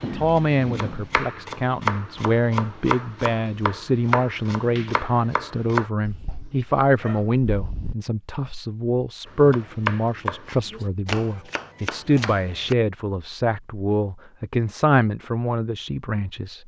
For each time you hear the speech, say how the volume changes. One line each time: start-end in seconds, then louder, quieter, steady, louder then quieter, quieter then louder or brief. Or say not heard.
0.0-16.6 steady.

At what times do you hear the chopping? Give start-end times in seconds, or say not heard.
0.0-5.9, 9.2-12.8.